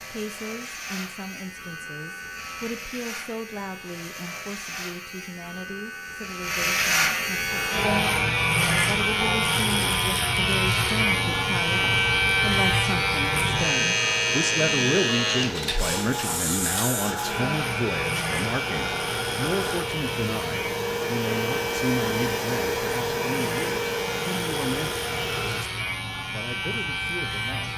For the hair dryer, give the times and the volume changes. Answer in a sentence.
The hair dryer can be heard from 7.5 to 25.6 s, getting louder.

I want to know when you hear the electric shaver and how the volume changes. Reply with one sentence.
The electric shaver can be heard from 0.0 to 27.7 s, getting louder then quieter.